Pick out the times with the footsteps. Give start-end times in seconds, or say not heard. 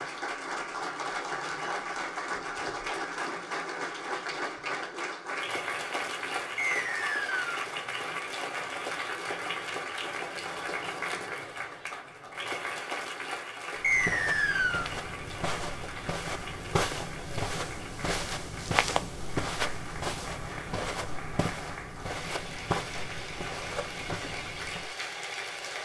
13.8-24.9.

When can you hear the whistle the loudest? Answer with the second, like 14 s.
14 s.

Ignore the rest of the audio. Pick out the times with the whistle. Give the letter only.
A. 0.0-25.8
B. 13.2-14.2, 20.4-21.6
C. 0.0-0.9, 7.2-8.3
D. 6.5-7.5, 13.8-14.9
D.